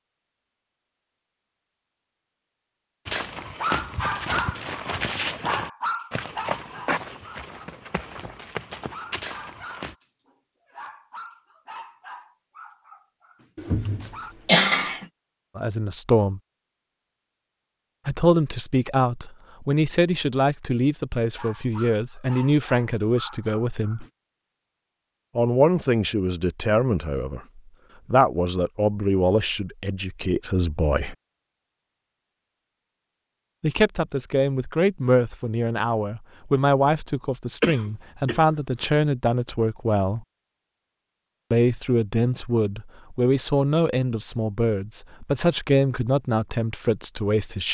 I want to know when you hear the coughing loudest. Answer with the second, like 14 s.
15 s.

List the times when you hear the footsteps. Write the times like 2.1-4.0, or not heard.
3.0-9.9.